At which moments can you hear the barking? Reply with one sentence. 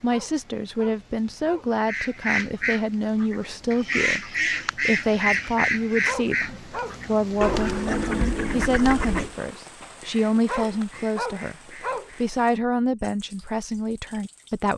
The barking can be heard from 0.1 to 1.8 s, from 6.0 to 7.7 s and from 10.4 to 12.1 s.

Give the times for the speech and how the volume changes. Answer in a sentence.
The speech can be heard from 0.0 to 11.6 s, at a steady volume; and briefly from 12.2 to 14.7 s.